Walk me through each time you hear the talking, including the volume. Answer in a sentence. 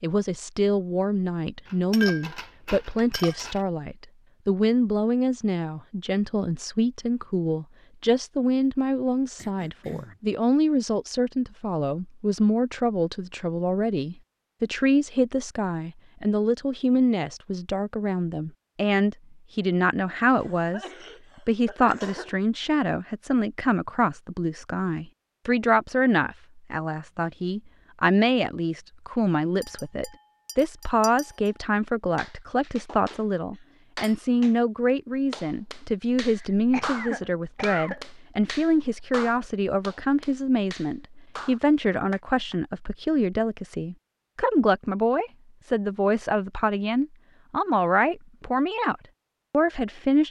The talking can be heard from 0.0 to 20.9 s, at a steady volume; and from 21.4 to 50.2 s, at a steady volume.